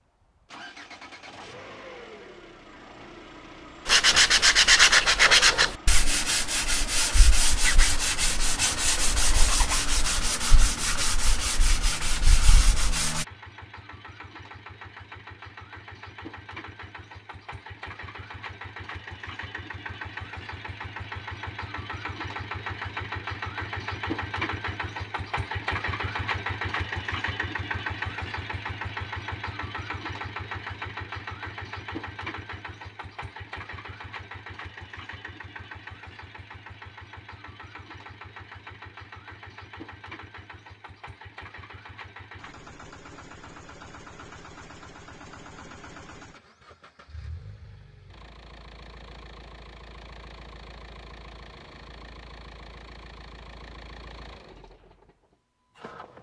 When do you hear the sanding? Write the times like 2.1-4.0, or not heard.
3.9-13.2.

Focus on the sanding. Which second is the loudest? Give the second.
5 s.